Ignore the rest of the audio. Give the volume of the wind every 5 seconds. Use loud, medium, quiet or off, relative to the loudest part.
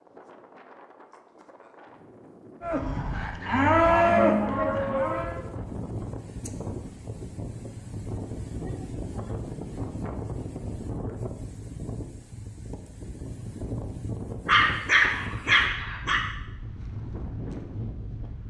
medium, loud, loud, loud.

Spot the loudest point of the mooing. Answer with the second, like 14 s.
4 s.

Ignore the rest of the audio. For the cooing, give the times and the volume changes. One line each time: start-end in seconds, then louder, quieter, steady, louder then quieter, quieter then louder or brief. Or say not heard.
not heard.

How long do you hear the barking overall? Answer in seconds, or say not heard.
2 s.